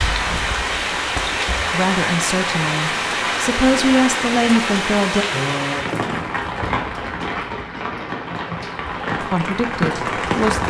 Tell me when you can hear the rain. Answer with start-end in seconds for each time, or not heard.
0.0-10.6.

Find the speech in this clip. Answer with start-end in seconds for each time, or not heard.
1.7-5.2, 9.2-10.6.